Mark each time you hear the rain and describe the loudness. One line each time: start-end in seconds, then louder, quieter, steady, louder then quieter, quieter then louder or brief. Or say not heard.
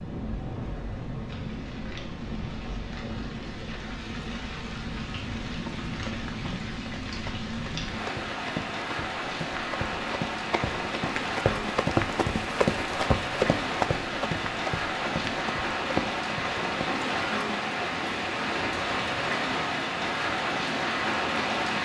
0.0-21.8 louder.